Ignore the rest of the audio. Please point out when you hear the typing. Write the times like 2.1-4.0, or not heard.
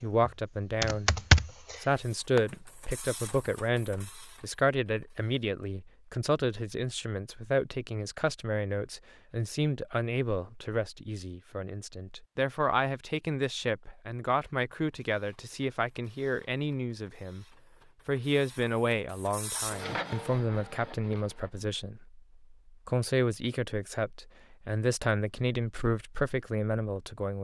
0.0-2.6.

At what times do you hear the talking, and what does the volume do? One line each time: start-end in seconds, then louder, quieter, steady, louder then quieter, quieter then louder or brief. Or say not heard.
0.0-1.2 brief
1.8-17.4 steady
18.1-27.3 steady.